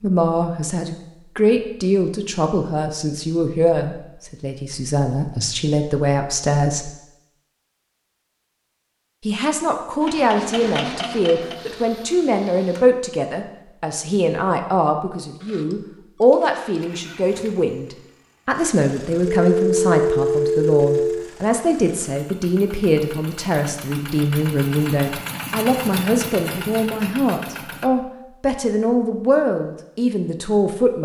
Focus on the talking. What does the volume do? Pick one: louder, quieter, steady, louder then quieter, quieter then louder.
steady.